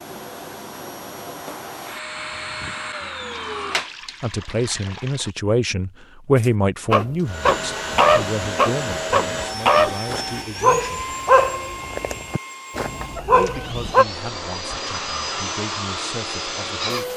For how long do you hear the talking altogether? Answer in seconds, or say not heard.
11 s.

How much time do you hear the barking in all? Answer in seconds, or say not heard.
8 s.